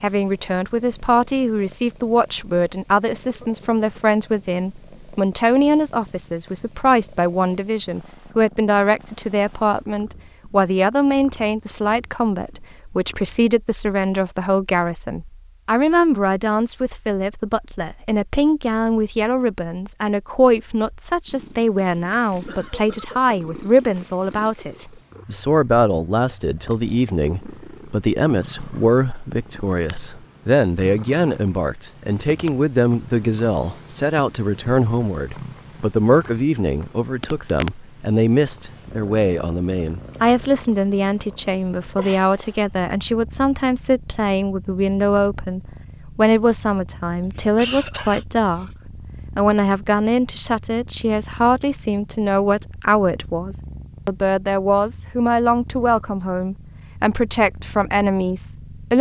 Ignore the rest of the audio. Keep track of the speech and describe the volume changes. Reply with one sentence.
The loudness of the speech stays about the same.